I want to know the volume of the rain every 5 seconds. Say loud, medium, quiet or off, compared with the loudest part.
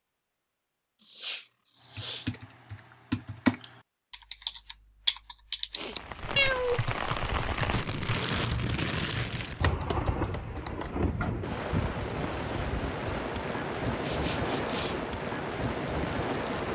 off, loud, loud, loud.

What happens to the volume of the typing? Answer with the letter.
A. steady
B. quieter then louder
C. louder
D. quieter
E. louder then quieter
E.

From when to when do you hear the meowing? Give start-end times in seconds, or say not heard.
6.3-6.9.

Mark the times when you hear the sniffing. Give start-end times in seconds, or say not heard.
1.0-2.3, 5.7-6.5, 14.0-14.9.